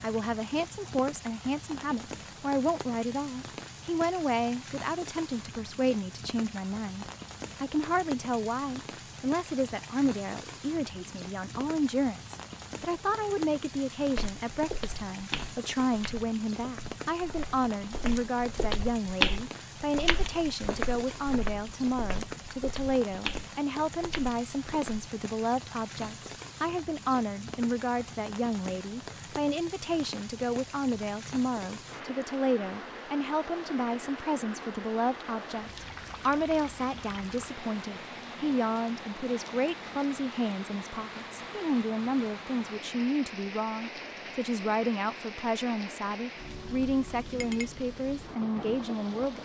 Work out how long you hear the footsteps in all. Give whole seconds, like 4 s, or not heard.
11 s.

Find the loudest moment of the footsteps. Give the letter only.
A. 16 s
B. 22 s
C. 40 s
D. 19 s
D.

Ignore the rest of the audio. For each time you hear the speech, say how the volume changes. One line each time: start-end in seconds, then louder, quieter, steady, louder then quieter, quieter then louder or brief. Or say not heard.
0.0-49.4 steady.